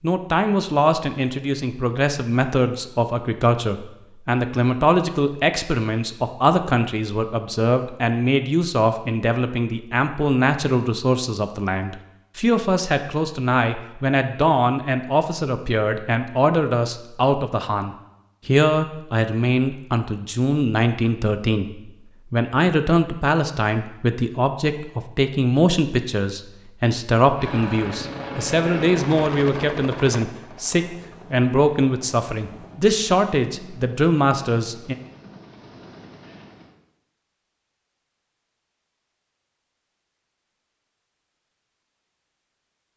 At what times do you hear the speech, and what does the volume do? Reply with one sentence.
You can hear the speech from 0.0 to 35.0 s, at a steady volume.